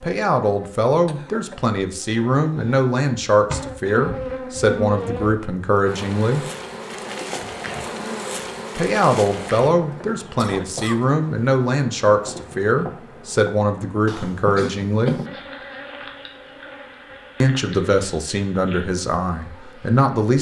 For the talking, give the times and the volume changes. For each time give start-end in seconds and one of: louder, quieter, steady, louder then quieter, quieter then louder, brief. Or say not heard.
0.0-6.5 steady
8.8-15.2 steady
17.4-20.3 brief.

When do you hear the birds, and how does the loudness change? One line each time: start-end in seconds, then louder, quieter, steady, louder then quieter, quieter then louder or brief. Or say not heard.
not heard.